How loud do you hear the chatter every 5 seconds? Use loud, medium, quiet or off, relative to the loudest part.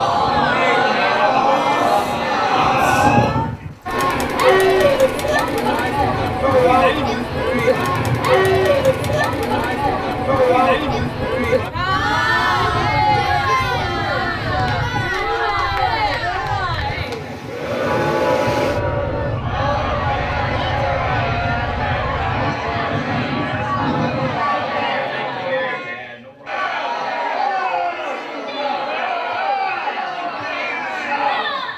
loud, loud, loud, medium, medium, medium, medium.